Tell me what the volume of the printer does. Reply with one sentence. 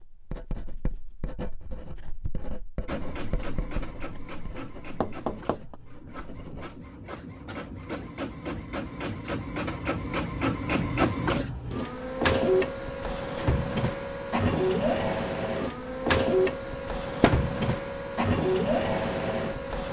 The volume of the printer goes up.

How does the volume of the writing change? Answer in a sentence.
The loudness of the writing goes down.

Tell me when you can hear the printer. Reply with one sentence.
You can hear the printer from 2.9 to 19.8 s.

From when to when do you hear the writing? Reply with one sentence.
The writing can be heard from 0.0 to 6.8 s.